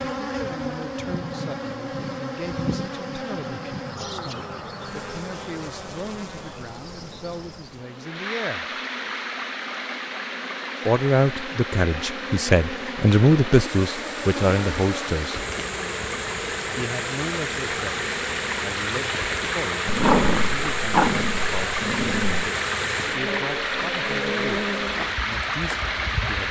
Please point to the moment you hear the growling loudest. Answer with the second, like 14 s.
20 s.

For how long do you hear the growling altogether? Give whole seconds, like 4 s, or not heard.
3 s.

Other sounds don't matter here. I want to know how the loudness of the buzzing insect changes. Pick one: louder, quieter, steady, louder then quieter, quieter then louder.
quieter then louder.